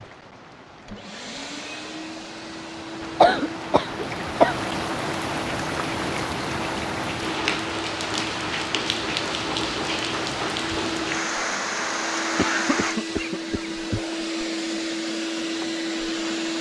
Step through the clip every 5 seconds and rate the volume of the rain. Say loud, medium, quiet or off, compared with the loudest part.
medium, loud, loud, off.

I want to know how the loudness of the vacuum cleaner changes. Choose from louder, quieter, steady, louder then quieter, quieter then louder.
louder.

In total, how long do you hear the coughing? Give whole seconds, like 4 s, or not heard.
4 s.